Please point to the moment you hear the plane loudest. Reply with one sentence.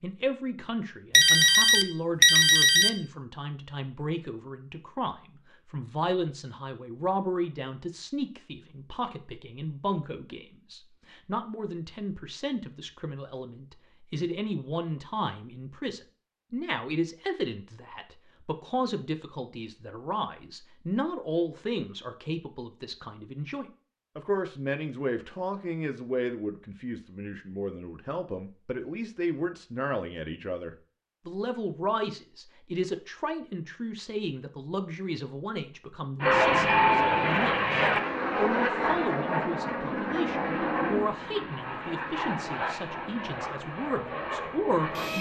The loudest moment of the plane is at 37 seconds.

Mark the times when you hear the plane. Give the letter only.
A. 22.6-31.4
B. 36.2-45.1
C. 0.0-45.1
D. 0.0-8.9
B.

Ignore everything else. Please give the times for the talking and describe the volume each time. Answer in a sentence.
You can hear the talking from 0.0 to 45.1 s, at a steady volume.